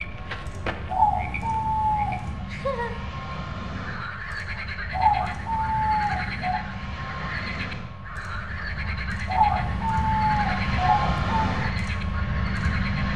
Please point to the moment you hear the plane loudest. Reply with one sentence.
The loudest moment of the plane is at 11 seconds.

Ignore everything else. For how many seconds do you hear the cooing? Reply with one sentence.
The cooing can be heard for 6 seconds in total.